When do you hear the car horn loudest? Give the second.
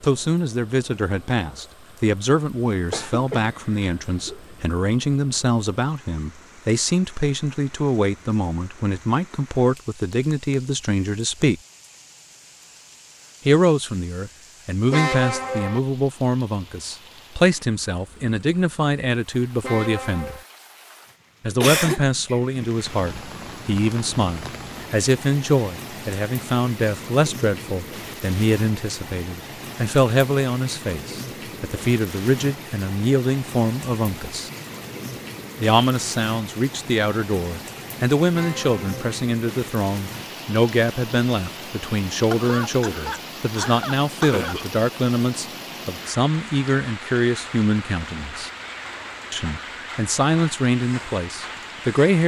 15 s.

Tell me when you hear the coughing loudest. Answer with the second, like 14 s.
22 s.